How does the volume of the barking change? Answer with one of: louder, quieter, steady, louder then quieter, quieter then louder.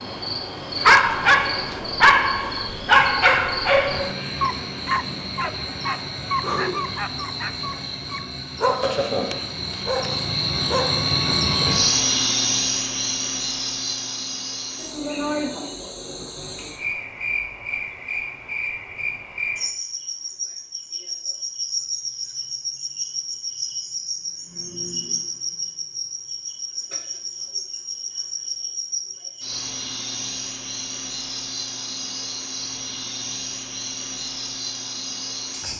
quieter.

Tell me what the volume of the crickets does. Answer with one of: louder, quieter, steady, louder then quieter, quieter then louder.
louder then quieter.